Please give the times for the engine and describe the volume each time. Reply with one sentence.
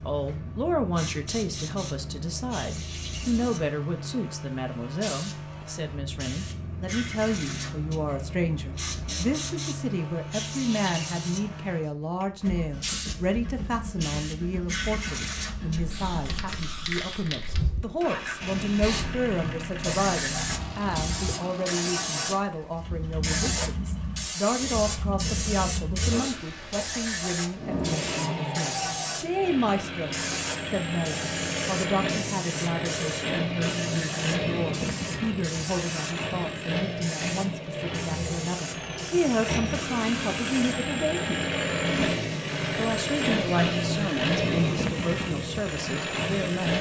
You can hear the engine from 0.0 to 46.7 s, getting louder.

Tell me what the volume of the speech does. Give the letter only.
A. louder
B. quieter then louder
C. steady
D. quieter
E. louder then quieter
C.